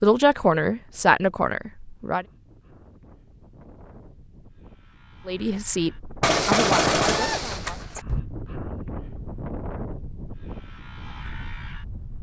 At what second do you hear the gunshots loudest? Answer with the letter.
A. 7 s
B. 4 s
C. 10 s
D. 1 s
A.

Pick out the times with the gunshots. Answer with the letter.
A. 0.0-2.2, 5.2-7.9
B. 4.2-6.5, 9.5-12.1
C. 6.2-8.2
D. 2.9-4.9
C.